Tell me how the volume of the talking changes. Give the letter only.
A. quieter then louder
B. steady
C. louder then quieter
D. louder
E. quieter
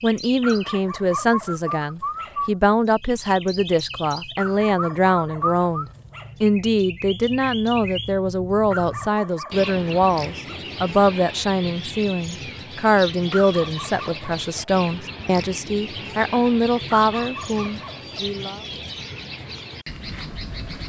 B.